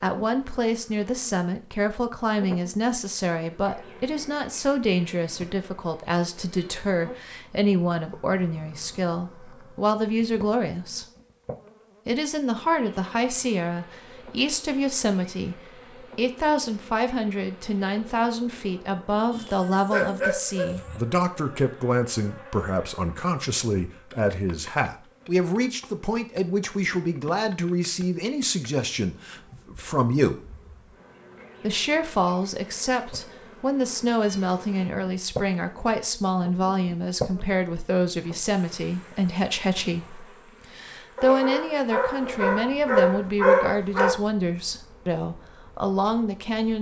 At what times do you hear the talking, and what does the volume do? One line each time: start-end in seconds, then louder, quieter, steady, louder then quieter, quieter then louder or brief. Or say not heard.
0.0-11.1 steady
12.1-30.4 steady
31.6-46.7 steady.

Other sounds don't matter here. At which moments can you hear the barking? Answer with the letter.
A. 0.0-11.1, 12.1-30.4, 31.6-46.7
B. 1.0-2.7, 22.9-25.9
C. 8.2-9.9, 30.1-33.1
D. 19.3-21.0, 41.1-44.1
D.